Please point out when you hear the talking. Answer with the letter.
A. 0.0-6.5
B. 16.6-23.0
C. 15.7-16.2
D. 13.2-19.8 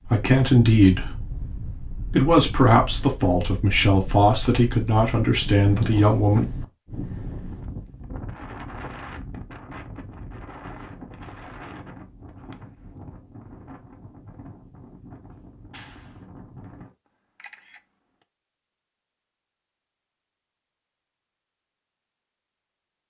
A.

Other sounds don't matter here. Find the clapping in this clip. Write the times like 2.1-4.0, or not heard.
15.7-16.2.